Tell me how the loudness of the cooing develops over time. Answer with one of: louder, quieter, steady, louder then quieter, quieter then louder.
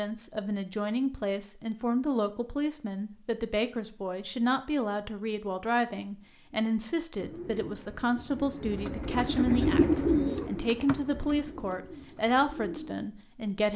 louder then quieter.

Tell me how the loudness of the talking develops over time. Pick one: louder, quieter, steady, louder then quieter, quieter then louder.
steady.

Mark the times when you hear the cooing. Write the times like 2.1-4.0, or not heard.
7.2-13.1.